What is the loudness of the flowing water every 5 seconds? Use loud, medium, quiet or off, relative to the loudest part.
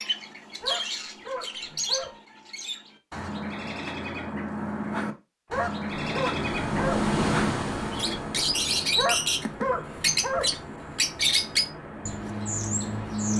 off, loud, medium.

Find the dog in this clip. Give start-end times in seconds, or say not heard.
0.6-2.1, 5.5-7.1, 8.9-10.6.